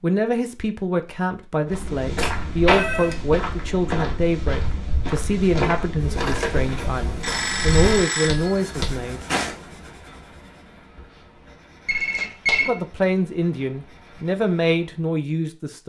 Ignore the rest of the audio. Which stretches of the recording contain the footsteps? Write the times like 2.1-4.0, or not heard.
1.6-9.6.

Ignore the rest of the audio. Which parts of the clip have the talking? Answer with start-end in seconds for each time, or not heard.
0.0-9.2, 12.7-15.8.